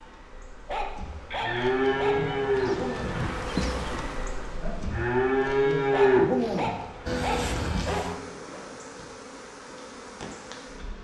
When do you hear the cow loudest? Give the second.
6 s.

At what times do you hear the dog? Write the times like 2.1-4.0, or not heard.
0.7-2.2, 5.9-8.6.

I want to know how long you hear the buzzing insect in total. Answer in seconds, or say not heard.
11 s.